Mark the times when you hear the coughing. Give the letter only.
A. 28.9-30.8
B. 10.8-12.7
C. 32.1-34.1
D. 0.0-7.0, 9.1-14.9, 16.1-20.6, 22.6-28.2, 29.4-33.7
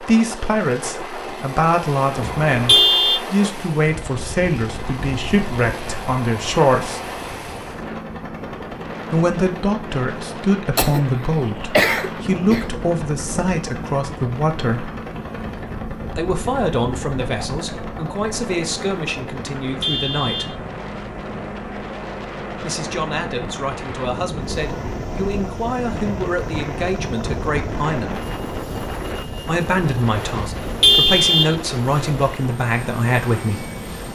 B.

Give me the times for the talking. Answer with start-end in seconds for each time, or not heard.
0.0-7.0, 9.1-14.9, 16.1-20.6, 22.6-28.2, 29.4-33.7.